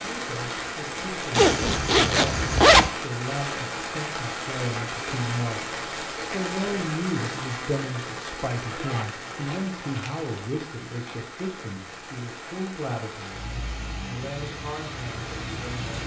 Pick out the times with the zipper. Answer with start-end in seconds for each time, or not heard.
1.3-2.9, 8.6-10.2.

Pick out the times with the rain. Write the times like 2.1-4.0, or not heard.
0.0-16.0.